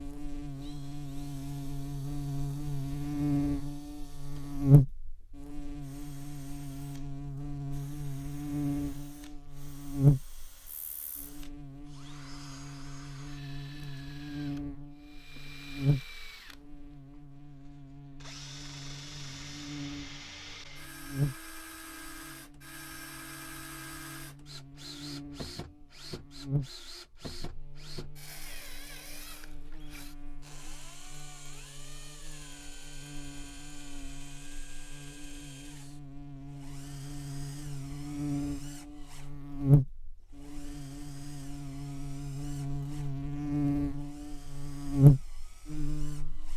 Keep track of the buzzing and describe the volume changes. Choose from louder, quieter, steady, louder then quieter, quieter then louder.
quieter then louder.